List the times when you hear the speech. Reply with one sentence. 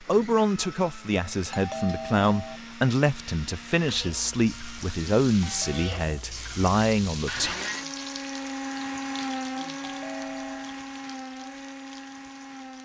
The speech can be heard from 0.0 to 7.5 s.